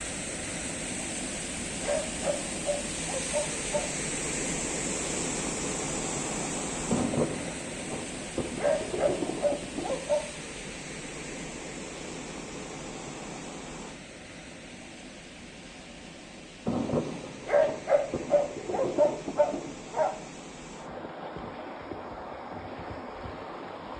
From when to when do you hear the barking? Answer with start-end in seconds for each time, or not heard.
1.8-3.9, 8.6-10.2, 17.4-20.1.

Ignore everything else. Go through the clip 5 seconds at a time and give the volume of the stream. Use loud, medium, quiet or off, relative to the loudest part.
loud, loud, medium, medium, medium.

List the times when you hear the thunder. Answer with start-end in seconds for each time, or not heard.
6.9-10.0, 16.6-19.8.